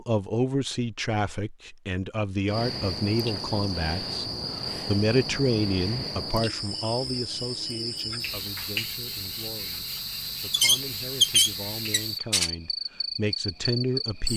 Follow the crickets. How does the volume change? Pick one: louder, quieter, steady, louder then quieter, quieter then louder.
steady.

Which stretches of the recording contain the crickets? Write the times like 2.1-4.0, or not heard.
2.5-14.3.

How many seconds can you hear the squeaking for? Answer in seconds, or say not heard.
2 s.